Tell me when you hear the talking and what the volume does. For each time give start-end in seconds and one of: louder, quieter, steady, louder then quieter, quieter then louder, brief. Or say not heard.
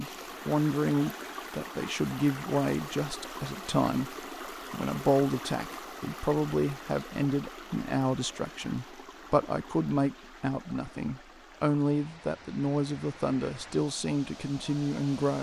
0.0-15.3 steady.